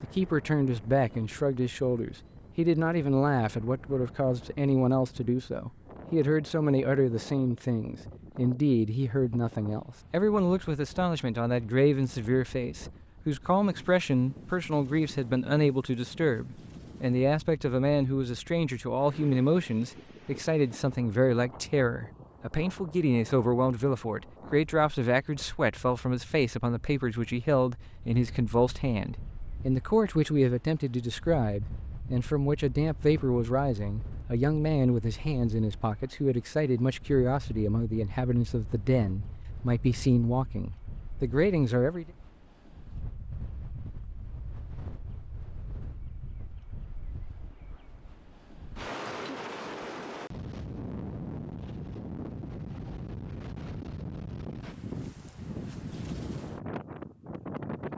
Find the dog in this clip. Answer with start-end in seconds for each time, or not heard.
not heard.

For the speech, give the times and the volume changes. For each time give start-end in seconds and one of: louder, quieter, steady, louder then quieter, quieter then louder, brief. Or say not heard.
0.0-42.0 steady.